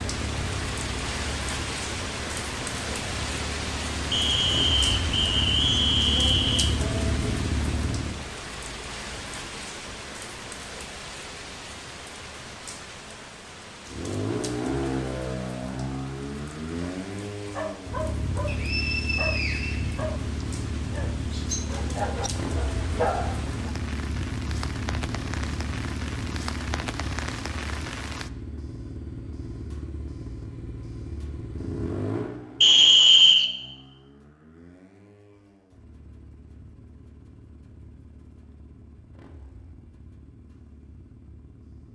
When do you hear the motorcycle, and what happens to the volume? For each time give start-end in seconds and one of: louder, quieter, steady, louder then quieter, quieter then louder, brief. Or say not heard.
0.0-8.2 louder
13.8-41.8 quieter.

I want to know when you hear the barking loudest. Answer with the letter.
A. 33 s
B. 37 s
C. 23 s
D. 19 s
C.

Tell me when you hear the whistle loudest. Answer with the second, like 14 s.
33 s.